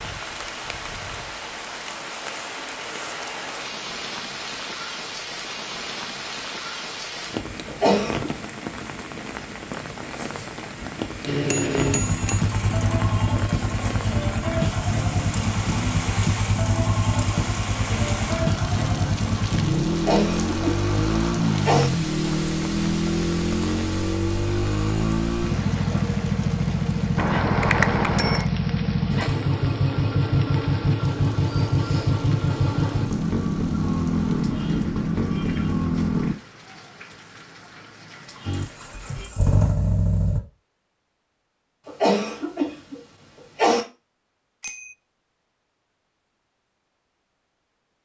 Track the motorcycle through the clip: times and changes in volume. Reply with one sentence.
You can hear the motorcycle from 11.2 to 36.4 s, at a steady volume; and briefly from 38.5 to 40.4 s.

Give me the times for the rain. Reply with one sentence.
The rain can be heard from 0.0 to 39.4 s.